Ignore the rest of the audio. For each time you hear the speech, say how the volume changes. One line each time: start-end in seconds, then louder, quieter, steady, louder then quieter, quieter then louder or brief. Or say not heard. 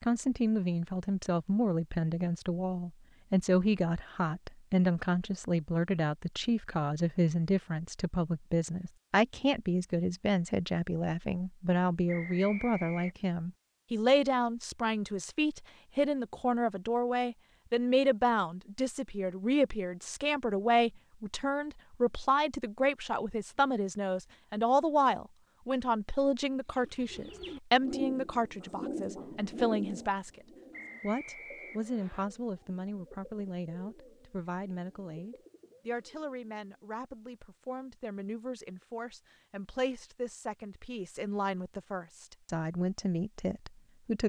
0.0-44.2 quieter.